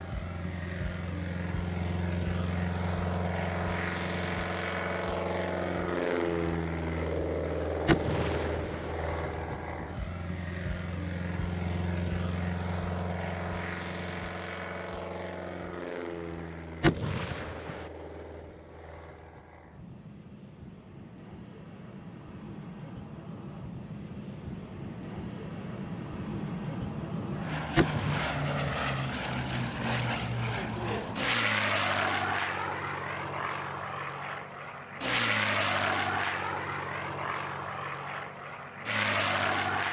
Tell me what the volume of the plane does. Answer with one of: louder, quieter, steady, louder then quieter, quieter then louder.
quieter then louder.